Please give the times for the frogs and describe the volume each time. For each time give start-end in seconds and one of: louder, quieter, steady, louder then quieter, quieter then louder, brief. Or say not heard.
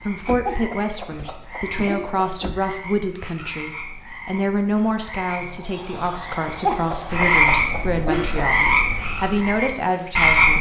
0.0-10.5 louder.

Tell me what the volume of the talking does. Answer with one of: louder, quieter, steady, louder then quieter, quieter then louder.
steady.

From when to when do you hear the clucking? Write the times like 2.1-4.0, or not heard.
0.5-2.5, 6.7-8.7.